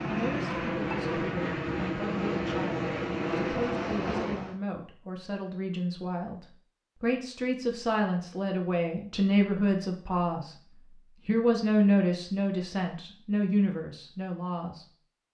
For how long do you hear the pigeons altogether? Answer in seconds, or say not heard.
not heard.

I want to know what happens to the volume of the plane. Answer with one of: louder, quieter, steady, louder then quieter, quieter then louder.
steady.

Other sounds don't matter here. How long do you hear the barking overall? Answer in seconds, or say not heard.
not heard.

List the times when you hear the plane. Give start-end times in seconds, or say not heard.
0.0-4.6.